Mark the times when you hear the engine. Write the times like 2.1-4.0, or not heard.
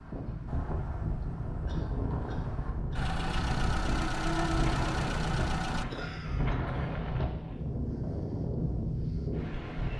3.0-5.8.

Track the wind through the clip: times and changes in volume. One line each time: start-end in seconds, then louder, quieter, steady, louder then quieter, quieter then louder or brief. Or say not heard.
0.0-9.9 steady.